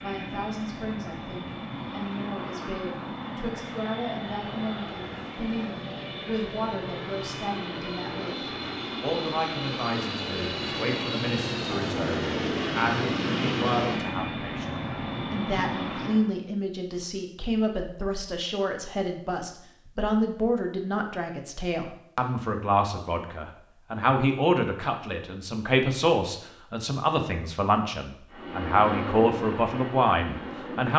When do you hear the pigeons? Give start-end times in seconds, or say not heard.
not heard.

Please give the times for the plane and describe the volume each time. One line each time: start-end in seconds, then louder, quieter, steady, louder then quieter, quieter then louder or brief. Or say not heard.
0.0-16.3 louder
28.2-30.9 brief.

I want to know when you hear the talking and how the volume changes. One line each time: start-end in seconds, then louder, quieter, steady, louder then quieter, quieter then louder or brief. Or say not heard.
0.0-30.9 louder.